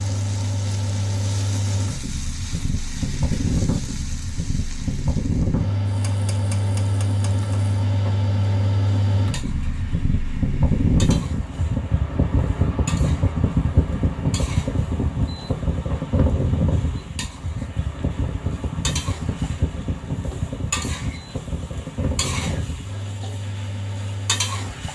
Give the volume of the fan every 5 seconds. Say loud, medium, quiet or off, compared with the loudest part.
medium, loud, loud, loud, medium.